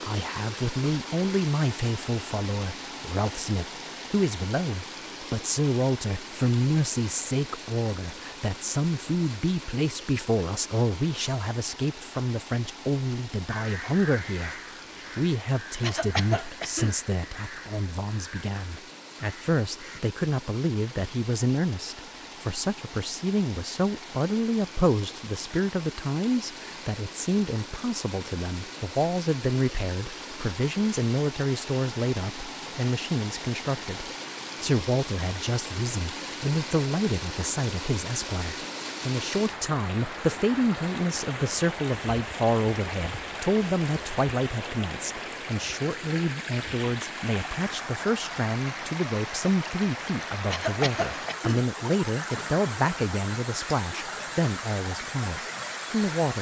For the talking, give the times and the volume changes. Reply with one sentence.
You can hear the talking from 0.0 to 56.3 s, at a steady volume.